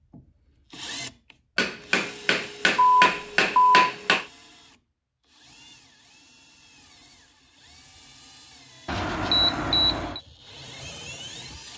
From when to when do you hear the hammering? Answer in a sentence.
The hammering can be heard from 1.6 to 4.2 s.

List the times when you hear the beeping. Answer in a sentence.
The beeping can be heard from 2.8 to 3.9 s and from 8.8 to 10.2 s.